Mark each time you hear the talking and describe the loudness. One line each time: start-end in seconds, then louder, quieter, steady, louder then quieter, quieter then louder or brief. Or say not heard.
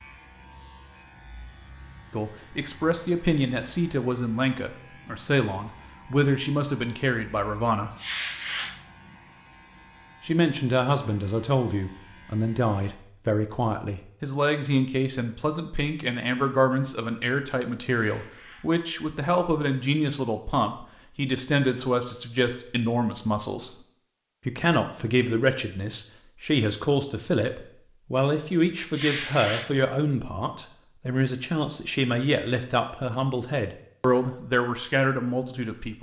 2.1-7.9 steady
10.2-23.8 steady
24.4-35.9 steady.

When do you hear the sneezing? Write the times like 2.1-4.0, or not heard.
8.0-9.2, 18.0-18.7, 28.9-29.9.